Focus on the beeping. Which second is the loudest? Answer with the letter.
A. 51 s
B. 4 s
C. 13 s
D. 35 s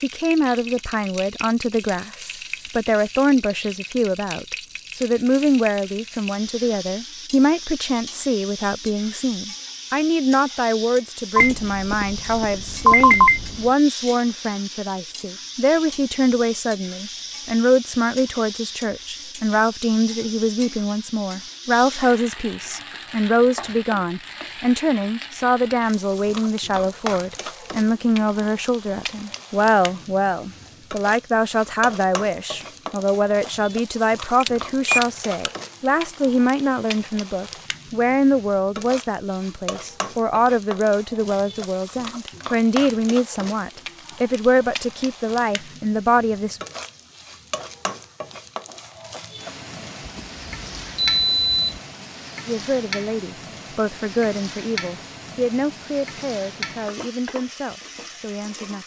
C.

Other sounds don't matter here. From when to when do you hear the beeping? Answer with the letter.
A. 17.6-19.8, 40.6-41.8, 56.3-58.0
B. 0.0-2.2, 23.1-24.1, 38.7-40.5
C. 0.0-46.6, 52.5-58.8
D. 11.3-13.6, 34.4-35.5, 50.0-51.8
D.